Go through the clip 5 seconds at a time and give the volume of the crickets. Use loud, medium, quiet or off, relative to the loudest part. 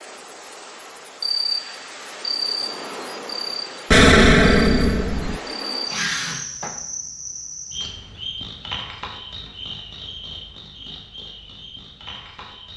loud, loud, medium.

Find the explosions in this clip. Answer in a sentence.
The explosions can be heard from 3.9 to 5.4 s.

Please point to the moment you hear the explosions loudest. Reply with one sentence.
The loudest moment of the explosions is at 4 seconds.